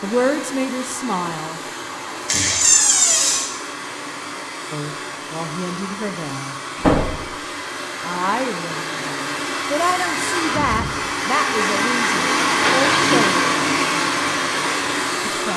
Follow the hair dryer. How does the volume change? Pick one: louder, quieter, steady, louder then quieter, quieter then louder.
louder.